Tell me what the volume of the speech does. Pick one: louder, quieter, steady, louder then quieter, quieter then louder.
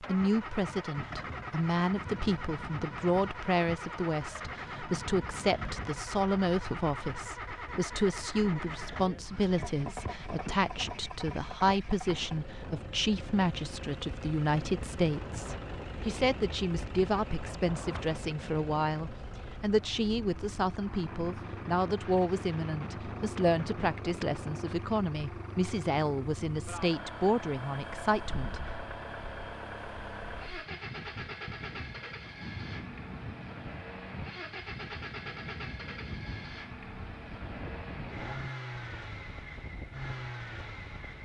steady.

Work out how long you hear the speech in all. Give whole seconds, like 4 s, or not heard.
29 s.